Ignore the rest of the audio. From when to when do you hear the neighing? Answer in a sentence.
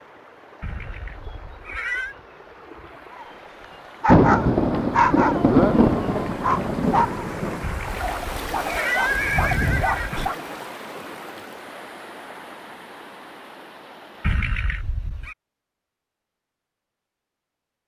The neighing can be heard from 0.6 to 2.1 s, from 7.6 to 10.3 s and from 14.2 to 15.3 s.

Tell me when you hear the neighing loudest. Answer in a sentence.
The volume of the neighing peaks at 9 seconds.